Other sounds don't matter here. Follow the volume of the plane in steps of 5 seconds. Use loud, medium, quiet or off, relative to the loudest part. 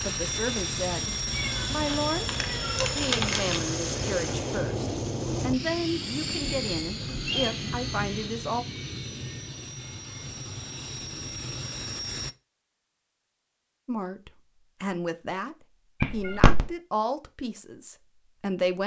loud, loud, medium, off.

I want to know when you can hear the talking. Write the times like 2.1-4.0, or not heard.
0.0-8.7, 13.8-18.8.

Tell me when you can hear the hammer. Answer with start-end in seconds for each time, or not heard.
not heard.